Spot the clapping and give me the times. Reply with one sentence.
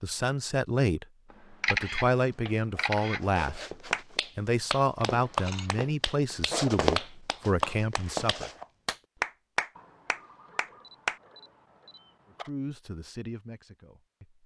The clapping can be heard from 3.9 to 11.2 s.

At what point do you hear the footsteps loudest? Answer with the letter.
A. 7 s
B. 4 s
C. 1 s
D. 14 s
A.